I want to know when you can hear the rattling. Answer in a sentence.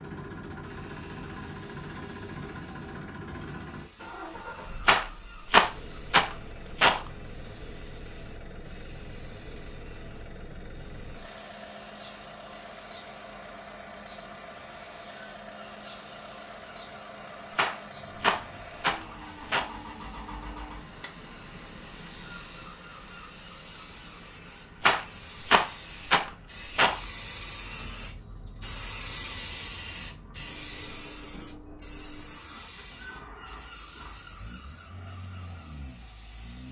The rattling can be heard from 4.8 to 7.0 s, from 17.6 to 19.7 s and from 24.8 to 27.0 s.